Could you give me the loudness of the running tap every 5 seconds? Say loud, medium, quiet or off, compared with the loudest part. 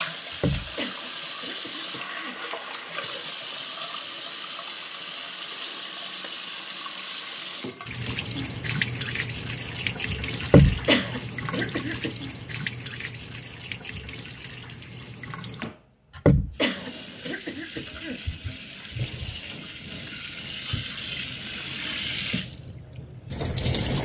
loud, loud, loud, medium, loud.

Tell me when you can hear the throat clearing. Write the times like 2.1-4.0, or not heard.
0.3-2.4, 10.4-12.1, 16.1-18.2.